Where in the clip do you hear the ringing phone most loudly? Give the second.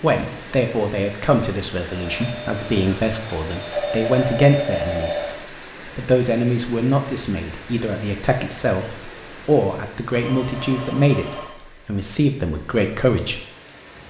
4 s.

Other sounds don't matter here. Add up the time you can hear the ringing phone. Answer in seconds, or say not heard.
3 s.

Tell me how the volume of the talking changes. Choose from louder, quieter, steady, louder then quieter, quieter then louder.
steady.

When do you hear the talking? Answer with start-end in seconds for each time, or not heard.
0.0-5.2, 5.8-13.4.